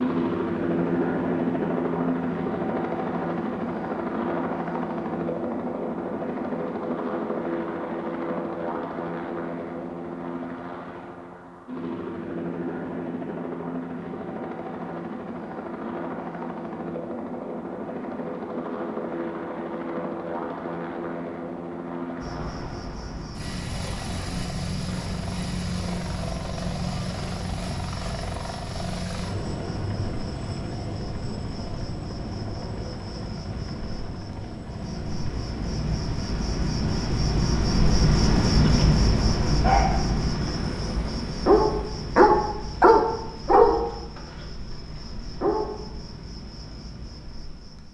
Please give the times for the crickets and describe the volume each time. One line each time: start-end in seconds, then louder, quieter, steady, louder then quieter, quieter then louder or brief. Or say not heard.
22.2-47.8 louder then quieter.